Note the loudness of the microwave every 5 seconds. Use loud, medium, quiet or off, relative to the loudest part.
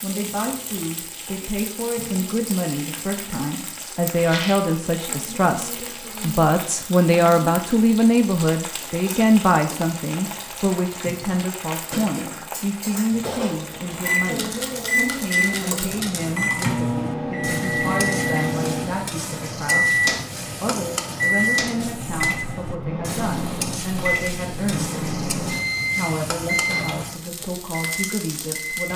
off, off, loud, loud, loud, loud.